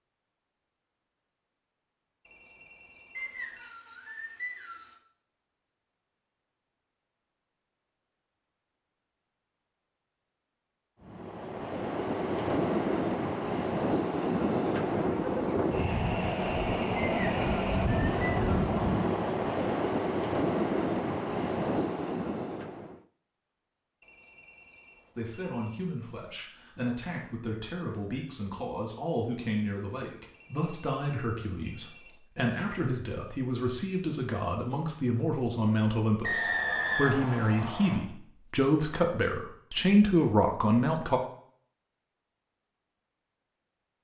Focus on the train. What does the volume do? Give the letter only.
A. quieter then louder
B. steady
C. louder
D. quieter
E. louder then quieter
B.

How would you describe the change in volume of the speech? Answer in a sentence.
The volume of the speech goes up.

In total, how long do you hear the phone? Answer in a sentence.
You can hear the phone for 5 seconds altogether.